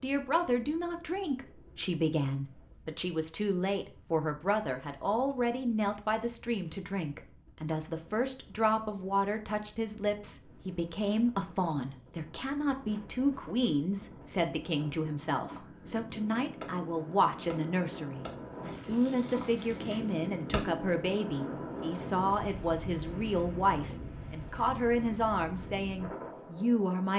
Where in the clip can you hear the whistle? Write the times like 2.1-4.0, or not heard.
not heard.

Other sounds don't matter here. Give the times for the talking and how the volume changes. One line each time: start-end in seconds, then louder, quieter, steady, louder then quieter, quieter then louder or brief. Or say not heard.
0.0-27.1 steady.